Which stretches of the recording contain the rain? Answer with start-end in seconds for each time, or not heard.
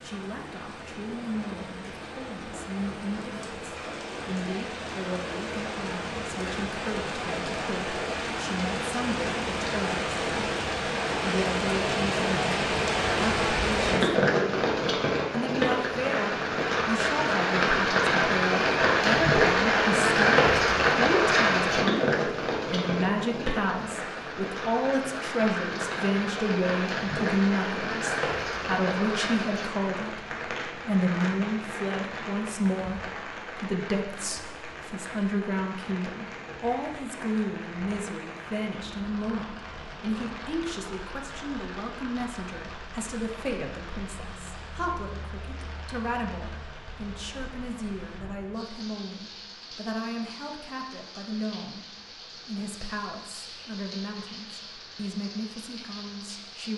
0.0-56.7.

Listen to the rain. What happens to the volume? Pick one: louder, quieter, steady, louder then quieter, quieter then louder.
louder then quieter.